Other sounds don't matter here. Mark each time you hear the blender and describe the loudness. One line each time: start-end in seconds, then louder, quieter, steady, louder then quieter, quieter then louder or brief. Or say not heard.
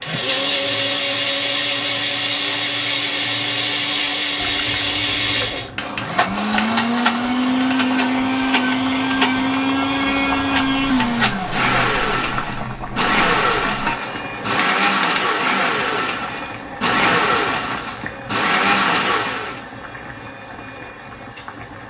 0.0-19.6 steady.